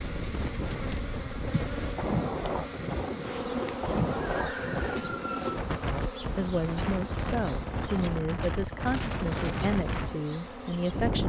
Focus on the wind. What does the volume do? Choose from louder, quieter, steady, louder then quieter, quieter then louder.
steady.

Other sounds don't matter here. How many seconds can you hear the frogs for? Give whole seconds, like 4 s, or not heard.
not heard.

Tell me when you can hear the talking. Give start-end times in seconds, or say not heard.
5.7-11.2.